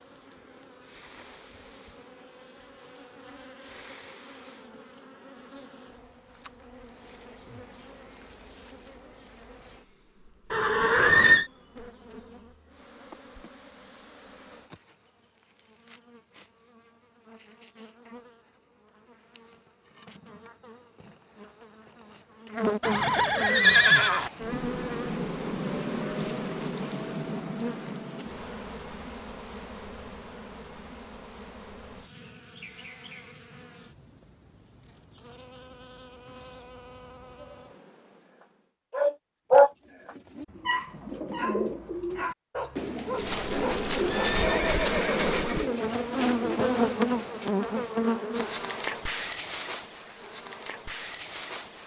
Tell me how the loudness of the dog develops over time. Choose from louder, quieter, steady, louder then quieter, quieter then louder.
quieter.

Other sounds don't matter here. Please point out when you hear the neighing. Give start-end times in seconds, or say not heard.
10.5-11.4, 22.8-24.3, 43.1-45.6.